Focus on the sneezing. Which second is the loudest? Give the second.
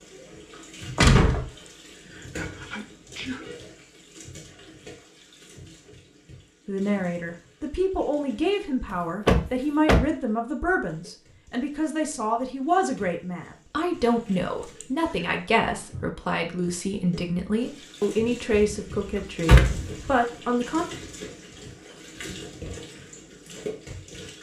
3 s.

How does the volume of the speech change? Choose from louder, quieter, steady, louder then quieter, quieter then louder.
steady.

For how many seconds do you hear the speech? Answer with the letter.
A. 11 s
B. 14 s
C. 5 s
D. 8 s
B.